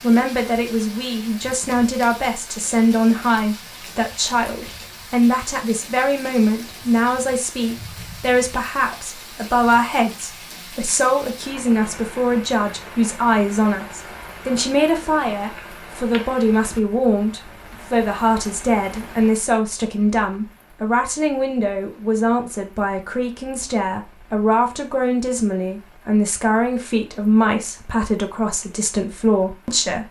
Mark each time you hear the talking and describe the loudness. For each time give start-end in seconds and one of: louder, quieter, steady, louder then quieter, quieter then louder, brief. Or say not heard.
0.0-30.0 steady.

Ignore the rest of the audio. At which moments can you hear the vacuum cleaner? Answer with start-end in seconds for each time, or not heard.
not heard.